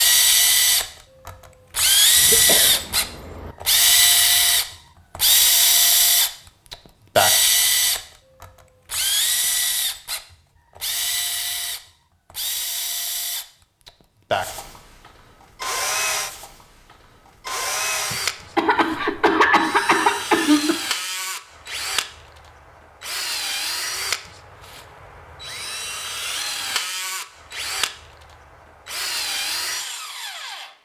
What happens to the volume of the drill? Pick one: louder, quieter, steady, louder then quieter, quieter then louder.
quieter.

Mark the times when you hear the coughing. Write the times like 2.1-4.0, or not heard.
2.1-3.5, 18.1-20.8.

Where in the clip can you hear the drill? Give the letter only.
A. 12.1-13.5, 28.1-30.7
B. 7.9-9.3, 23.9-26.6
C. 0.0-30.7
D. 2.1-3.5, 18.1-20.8
C.